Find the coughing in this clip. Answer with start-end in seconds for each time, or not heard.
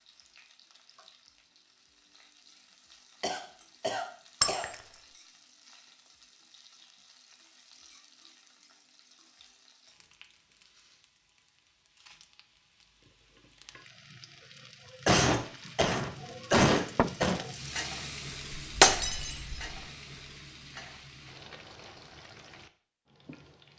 3.2-4.7, 15.1-17.4.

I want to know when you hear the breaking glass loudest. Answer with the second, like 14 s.
19 s.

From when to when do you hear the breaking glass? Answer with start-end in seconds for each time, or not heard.
4.4-4.9, 18.8-19.8.